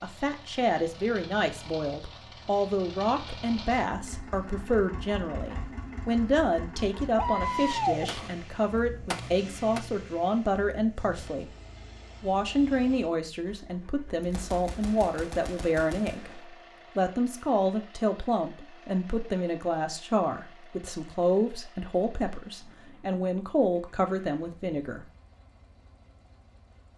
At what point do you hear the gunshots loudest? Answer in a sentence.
The volume of the gunshots peaks at 8 seconds.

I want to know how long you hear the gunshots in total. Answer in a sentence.
The gunshots can be heard for 5 seconds in total.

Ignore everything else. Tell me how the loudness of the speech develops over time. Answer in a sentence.
The volume of the speech stays about the same.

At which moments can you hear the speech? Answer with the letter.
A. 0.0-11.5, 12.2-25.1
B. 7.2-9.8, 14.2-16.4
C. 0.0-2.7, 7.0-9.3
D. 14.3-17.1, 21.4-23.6
A.